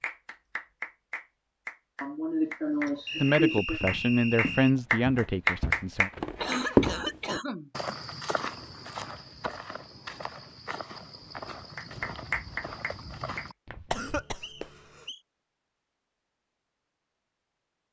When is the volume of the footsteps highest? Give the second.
7 s.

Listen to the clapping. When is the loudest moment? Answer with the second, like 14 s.
6 s.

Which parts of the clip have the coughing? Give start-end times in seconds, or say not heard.
2.0-3.8, 6.4-7.7, 13.9-14.7.